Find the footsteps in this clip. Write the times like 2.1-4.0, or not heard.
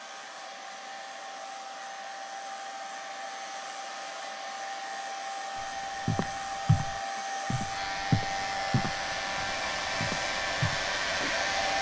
5.5-11.3.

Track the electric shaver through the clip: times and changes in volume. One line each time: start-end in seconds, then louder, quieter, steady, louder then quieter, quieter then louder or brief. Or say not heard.
0.0-11.7 louder.